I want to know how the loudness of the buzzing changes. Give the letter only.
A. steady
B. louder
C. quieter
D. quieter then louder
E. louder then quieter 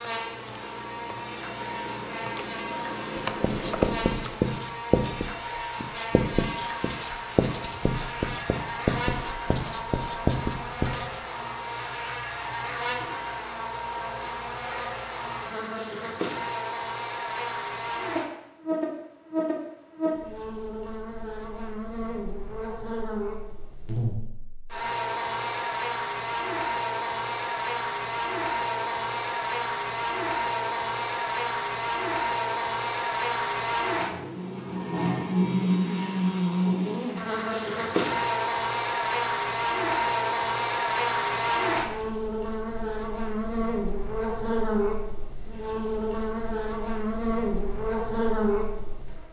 B.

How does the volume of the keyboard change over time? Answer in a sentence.
The volume of the keyboard goes up.